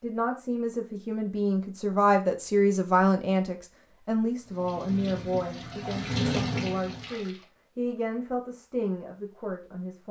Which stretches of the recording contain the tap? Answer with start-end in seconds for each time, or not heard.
4.4-7.5.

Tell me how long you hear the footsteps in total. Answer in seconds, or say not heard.
not heard.